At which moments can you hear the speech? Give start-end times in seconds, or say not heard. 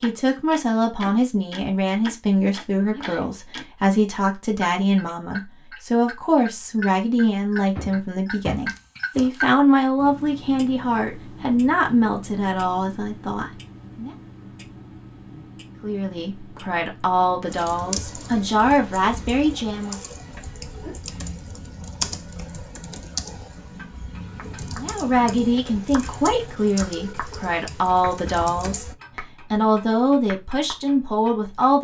0.0-14.1, 15.8-20.0, 24.8-31.7.